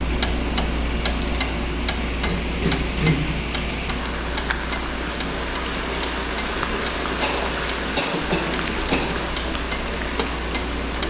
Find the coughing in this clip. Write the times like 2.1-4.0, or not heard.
2.1-3.2, 7.2-9.1.